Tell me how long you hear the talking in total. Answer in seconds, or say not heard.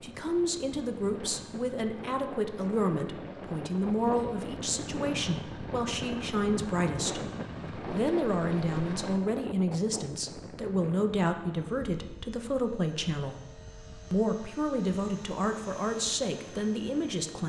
16 s.